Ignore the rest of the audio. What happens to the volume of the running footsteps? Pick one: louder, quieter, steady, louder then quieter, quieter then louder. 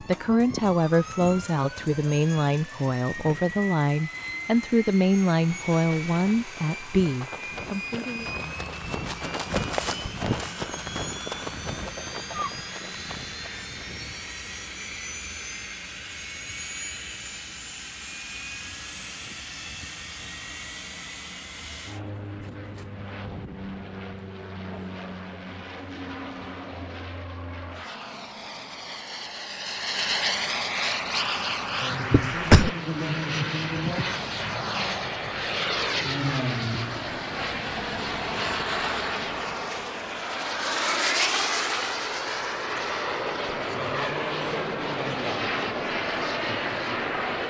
louder then quieter.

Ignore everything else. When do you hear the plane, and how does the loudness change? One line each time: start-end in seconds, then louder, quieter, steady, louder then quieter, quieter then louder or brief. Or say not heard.
0.0-47.4 louder.